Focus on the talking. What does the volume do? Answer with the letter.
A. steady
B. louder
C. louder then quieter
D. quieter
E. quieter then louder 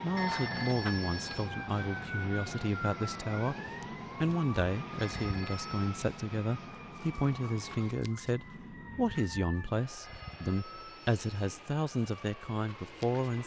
A.